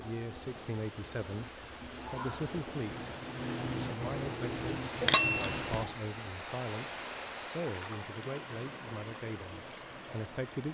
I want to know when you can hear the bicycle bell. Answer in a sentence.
The bicycle bell can be heard from 5.0 to 5.8 s.